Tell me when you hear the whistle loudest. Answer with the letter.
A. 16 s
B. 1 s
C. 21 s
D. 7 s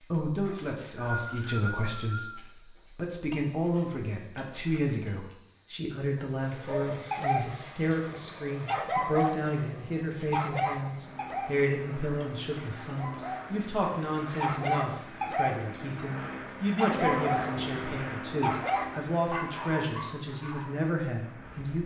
B.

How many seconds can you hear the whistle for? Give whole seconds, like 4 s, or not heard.
2 s.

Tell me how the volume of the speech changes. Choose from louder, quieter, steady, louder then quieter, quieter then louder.
steady.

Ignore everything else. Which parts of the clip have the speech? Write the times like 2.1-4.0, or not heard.
0.0-21.8.